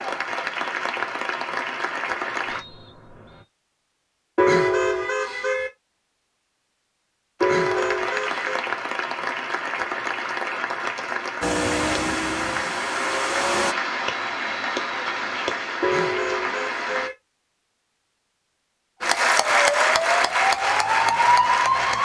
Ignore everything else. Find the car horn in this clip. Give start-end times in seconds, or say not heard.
4.3-5.7, 7.4-8.7, 15.8-17.1.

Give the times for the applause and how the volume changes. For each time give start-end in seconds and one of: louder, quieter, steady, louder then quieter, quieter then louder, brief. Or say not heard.
0.0-2.6 brief
7.4-17.1 steady
19.0-21.9 brief.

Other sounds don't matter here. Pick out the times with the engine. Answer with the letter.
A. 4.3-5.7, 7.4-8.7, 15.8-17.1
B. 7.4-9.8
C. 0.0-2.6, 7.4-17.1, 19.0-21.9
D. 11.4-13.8
D.